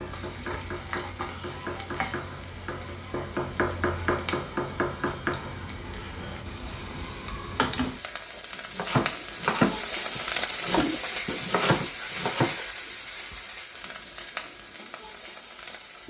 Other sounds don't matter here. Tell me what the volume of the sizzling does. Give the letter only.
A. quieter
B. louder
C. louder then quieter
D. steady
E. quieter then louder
C.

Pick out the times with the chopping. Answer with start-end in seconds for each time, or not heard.
0.0-5.5, 8.7-12.6.